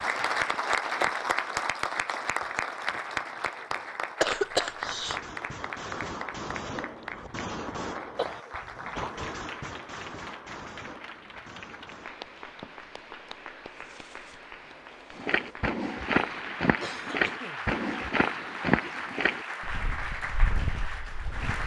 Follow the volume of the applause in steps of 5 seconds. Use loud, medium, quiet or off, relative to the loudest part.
loud, medium, quiet, medium, medium.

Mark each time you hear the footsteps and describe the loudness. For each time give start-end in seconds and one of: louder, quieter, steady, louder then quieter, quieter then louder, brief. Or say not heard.
0.0-4.2 louder then quieter
15.1-21.6 quieter.